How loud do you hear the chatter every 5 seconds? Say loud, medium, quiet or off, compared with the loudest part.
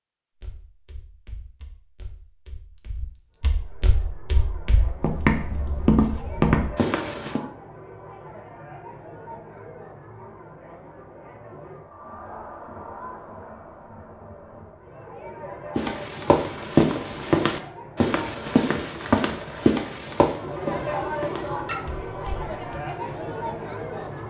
quiet, medium, medium, medium, loud.